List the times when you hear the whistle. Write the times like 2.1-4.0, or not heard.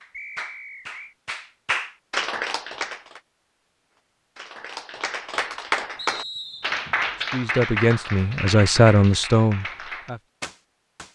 0.1-1.1, 6.0-6.8.